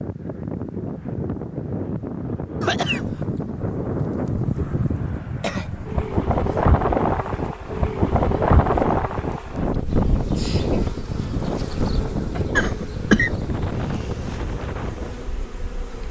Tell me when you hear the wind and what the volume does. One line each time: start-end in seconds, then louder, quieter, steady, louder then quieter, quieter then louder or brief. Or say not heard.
0.0-15.8 louder then quieter.